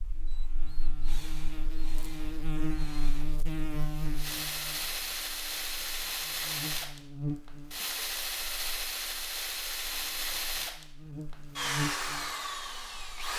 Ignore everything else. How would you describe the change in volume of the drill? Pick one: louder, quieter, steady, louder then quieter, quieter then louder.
louder.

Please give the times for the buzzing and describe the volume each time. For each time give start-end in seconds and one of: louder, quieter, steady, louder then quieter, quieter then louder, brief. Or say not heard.
0.0-13.1 quieter then louder.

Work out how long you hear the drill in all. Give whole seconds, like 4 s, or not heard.
13 s.